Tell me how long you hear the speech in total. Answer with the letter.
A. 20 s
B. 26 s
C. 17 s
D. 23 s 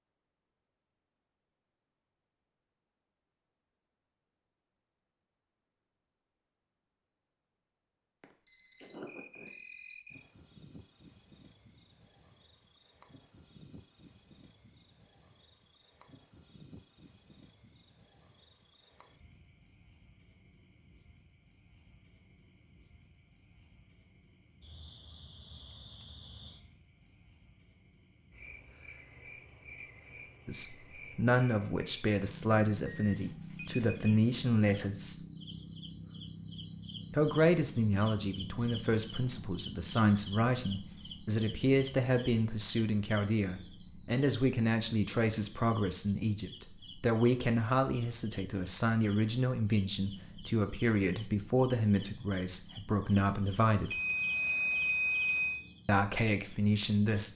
D.